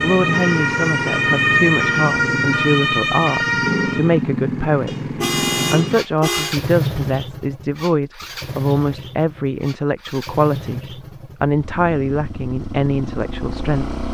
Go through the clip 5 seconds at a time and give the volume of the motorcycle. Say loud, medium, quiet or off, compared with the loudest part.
loud, loud, medium.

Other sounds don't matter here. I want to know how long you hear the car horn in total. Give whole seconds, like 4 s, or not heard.
2 s.